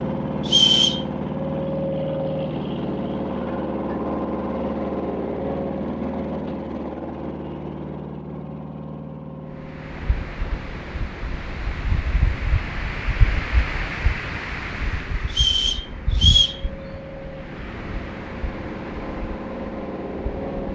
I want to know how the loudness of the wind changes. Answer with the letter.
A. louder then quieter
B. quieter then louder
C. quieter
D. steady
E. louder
A.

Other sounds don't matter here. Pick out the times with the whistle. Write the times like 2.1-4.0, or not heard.
0.5-1.1, 15.3-16.6.